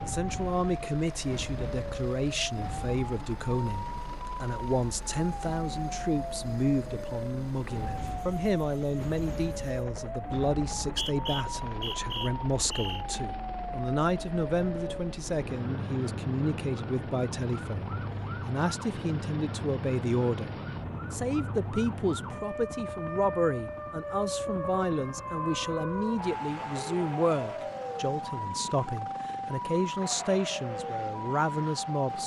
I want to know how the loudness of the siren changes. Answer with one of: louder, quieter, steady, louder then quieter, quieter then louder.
steady.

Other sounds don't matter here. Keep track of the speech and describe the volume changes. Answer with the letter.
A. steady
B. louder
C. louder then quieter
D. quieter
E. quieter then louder
A.